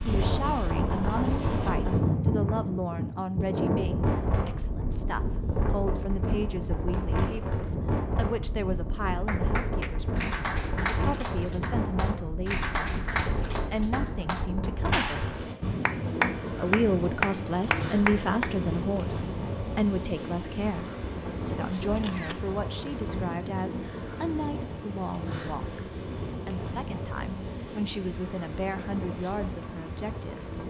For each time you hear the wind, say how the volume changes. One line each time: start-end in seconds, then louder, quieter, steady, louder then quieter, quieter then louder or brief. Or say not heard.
0.0-30.6 quieter.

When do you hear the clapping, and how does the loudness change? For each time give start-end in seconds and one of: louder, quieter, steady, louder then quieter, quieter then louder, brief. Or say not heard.
9.2-18.5 louder.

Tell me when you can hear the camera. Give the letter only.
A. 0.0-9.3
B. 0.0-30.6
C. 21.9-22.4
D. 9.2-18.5
C.